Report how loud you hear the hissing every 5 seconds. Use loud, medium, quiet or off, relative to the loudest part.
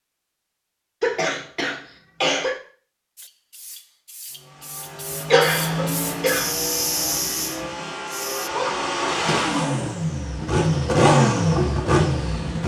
quiet, loud, off.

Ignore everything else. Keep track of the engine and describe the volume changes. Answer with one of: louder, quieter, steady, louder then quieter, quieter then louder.
louder.